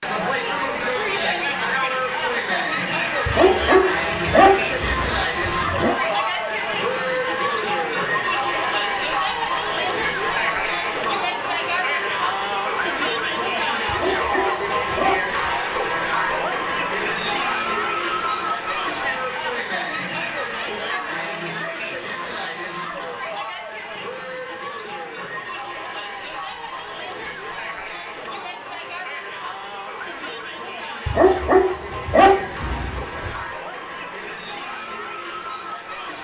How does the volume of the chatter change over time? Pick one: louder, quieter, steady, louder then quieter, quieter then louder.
quieter.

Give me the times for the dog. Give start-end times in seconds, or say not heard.
3.2-6.0, 13.8-15.5, 31.1-33.4.